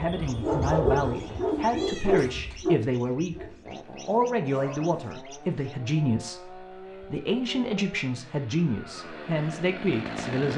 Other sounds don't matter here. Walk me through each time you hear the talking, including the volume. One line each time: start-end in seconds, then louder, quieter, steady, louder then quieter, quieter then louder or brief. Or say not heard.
0.0-10.5 steady.